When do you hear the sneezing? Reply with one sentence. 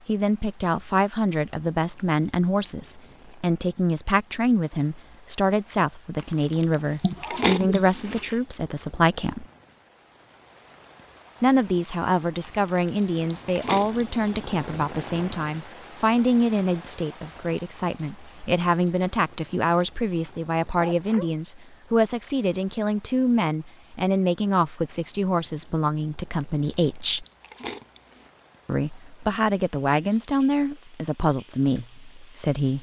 You can hear the sneezing from 7.0 to 7.8 s and from 20.8 to 21.3 s.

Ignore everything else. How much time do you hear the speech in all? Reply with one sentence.
You can hear the speech for 29 seconds altogether.